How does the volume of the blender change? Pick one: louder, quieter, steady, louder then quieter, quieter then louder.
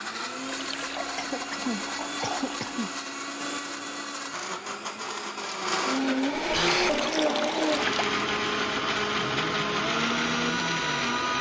louder.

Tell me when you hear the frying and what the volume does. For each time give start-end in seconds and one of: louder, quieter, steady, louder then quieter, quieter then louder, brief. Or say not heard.
not heard.